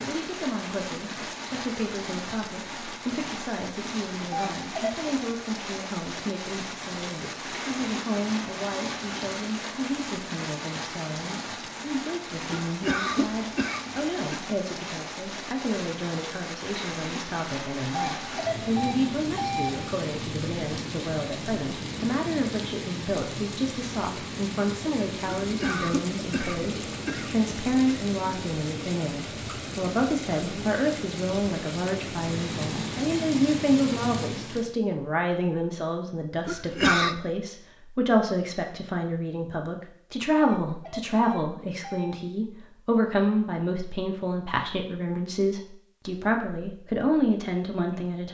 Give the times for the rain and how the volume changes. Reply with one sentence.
You can hear the rain from 0.0 to 34.8 s, at a steady volume.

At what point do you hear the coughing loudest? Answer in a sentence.
The volume of the coughing peaks at 37 seconds.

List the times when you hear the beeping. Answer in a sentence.
You can hear the beeping from 4.2 to 5.0 s, from 18.1 to 19.8 s and from 40.3 to 42.2 s.